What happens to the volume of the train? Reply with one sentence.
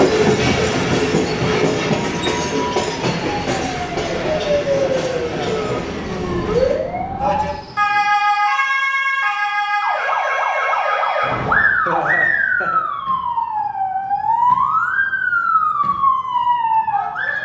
The loudness of the train goes down.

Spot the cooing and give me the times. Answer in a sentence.
The cooing can't be heard in this clip.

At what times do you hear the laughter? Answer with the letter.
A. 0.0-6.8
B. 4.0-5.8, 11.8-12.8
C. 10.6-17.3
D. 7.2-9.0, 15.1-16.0
B.